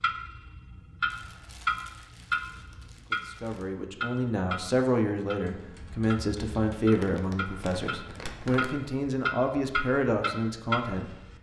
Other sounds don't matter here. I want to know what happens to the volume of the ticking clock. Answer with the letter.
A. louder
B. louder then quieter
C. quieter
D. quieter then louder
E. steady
D.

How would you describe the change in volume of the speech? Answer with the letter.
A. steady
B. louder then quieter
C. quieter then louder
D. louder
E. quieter
A.